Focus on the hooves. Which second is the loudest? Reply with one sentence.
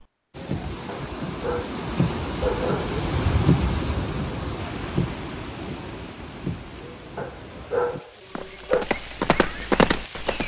The volume of the hooves peaks at 10 seconds.